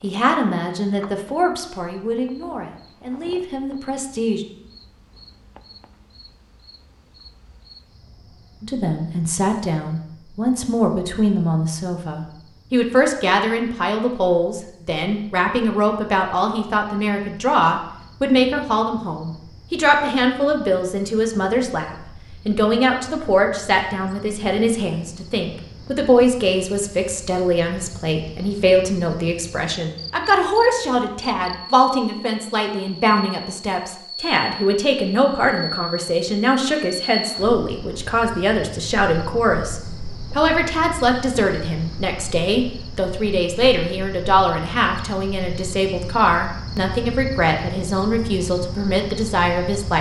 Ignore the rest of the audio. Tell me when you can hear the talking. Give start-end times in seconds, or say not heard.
0.0-4.5, 8.6-49.9.